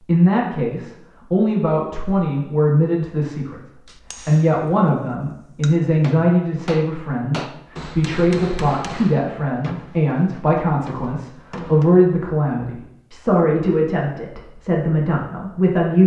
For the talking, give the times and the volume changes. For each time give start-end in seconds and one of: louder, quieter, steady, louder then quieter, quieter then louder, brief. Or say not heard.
0.1-16.0 steady.